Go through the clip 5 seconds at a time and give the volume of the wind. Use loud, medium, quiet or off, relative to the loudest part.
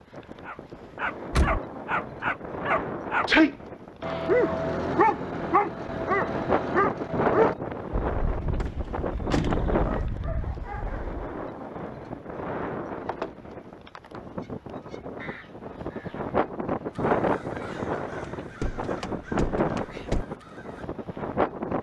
medium, loud, medium, loud, loud.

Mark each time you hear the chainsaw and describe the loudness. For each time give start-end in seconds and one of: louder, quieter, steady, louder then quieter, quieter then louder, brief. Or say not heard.
not heard.